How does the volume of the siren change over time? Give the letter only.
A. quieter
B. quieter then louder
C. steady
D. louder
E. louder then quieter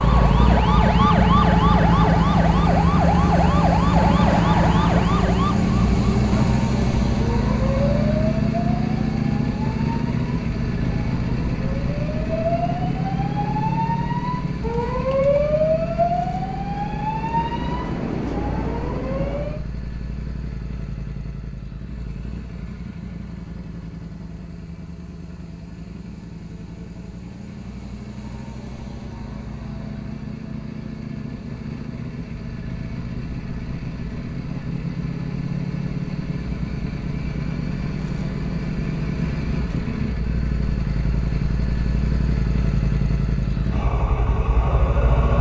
B.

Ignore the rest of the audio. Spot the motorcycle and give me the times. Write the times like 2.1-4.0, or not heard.
0.0-45.3.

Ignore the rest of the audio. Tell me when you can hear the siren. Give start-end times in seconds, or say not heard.
0.0-19.6.